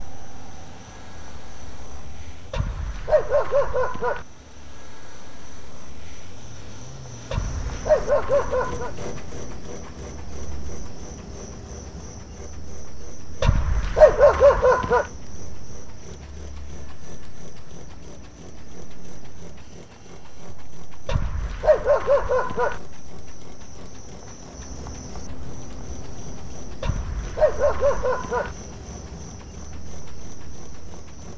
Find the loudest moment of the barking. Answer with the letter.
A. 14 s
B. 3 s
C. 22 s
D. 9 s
A.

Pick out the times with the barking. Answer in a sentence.
The barking can be heard from 2.5 to 4.2 s, from 7.3 to 8.9 s, from 13.4 to 15.1 s, from 21.1 to 22.8 s and from 26.8 to 28.6 s.